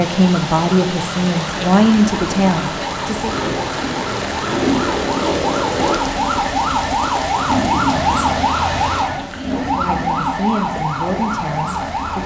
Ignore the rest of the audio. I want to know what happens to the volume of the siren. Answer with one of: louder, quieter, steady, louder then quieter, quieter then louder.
louder.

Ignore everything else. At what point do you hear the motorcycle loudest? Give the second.
5 s.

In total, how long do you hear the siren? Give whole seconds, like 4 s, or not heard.
12 s.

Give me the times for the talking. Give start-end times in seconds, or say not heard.
0.0-3.4, 9.4-12.2.